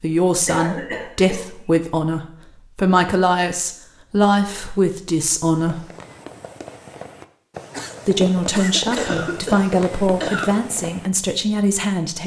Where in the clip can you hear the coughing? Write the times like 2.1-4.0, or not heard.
0.5-1.5, 8.9-10.5.